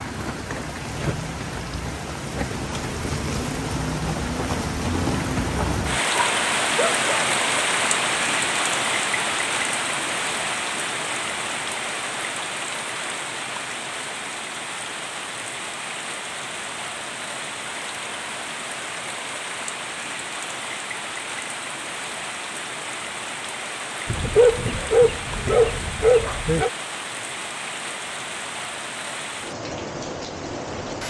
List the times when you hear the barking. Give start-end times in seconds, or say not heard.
6.1-7.3, 24.1-26.7.